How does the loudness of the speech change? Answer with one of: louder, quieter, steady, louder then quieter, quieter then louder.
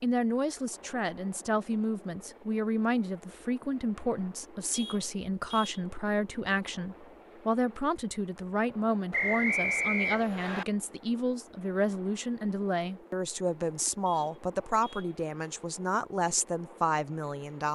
steady.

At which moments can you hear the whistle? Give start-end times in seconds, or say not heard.
9.1-10.7.